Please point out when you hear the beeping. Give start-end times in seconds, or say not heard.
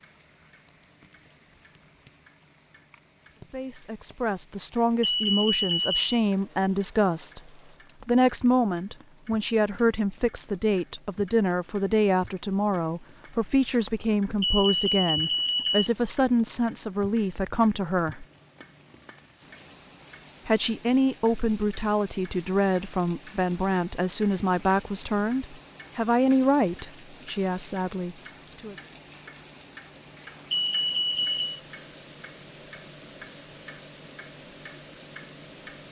5.0-6.1, 14.4-15.9, 30.5-31.4.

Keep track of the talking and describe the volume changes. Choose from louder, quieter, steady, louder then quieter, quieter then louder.
steady.